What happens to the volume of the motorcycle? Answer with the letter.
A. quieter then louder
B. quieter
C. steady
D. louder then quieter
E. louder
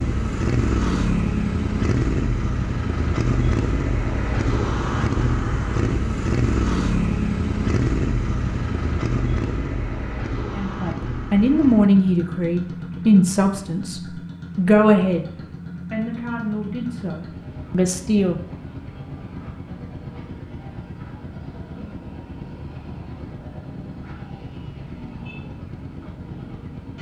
B.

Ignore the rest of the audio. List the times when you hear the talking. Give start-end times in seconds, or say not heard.
10.6-15.3, 15.9-18.4.